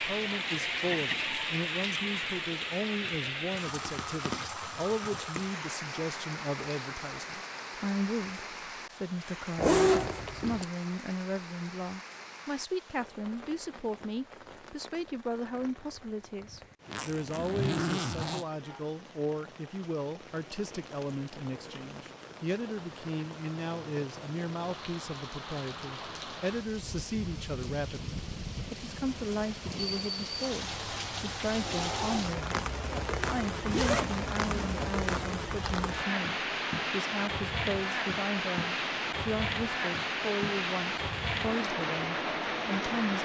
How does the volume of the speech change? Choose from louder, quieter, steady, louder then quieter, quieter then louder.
steady.